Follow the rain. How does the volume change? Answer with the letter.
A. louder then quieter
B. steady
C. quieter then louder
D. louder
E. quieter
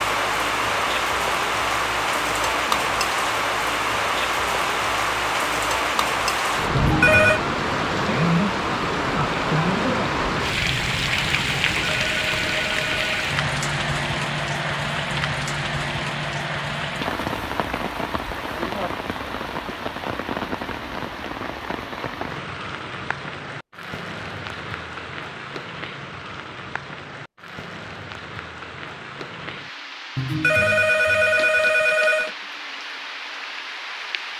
E.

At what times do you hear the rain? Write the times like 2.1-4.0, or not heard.
0.0-34.3.